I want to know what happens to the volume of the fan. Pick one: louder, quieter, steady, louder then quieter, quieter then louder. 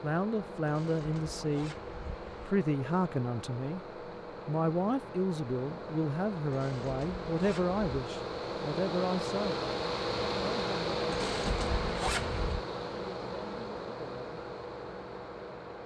louder then quieter.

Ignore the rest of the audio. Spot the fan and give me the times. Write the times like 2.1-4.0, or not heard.
0.0-15.8.